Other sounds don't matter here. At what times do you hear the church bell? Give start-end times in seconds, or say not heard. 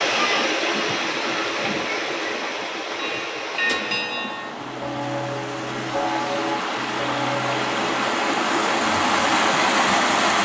2.9-8.1.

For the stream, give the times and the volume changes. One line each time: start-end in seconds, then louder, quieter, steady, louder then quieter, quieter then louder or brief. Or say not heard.
0.0-10.3 quieter then louder.